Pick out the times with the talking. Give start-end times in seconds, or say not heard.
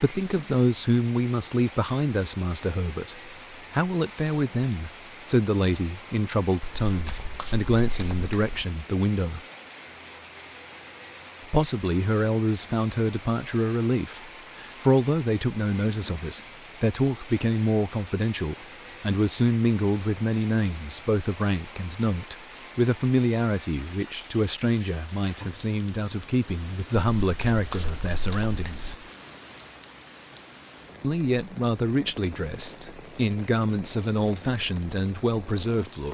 0.0-9.4, 11.5-28.9, 31.0-36.0.